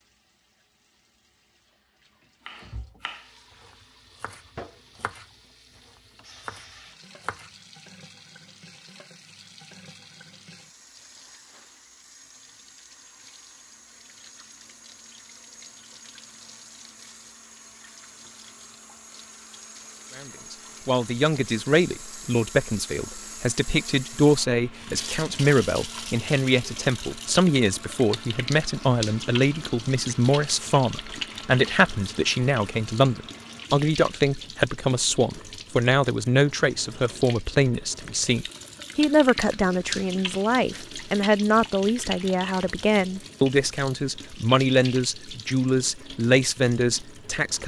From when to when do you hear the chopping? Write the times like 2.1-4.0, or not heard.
2.5-5.2, 5.8-7.5.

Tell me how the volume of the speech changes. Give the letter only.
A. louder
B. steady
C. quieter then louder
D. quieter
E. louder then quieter
B.